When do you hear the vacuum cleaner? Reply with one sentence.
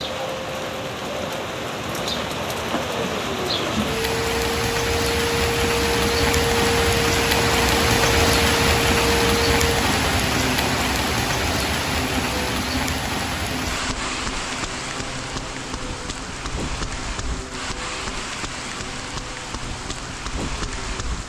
The vacuum cleaner can be heard from 0.0 to 21.2 s.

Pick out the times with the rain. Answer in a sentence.
The rain can be heard from 0.0 to 21.2 s.